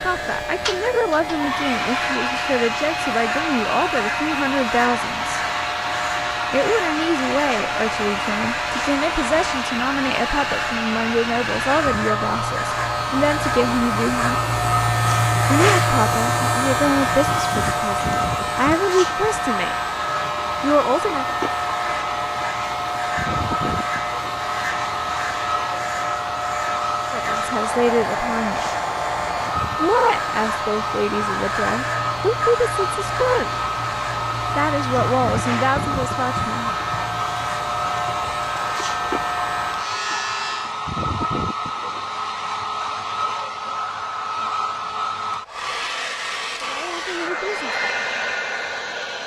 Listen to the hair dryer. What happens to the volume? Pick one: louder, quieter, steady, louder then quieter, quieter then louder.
steady.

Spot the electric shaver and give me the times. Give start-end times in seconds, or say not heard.
0.0-40.8.